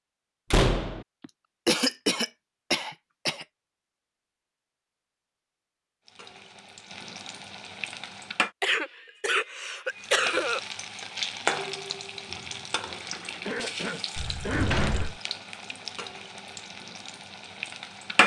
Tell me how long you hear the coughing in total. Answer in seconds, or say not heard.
6 s.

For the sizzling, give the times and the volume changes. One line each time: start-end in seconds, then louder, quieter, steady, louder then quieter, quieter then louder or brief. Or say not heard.
6.0-8.5 brief
9.9-18.2 quieter.